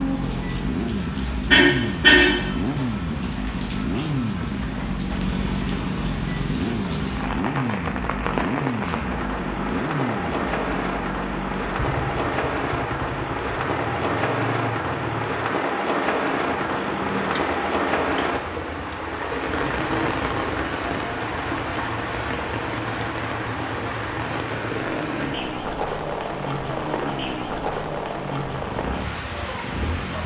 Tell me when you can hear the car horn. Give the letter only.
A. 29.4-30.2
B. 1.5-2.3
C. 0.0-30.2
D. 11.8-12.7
B.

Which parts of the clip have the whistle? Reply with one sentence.
The whistle can't be heard in this clip.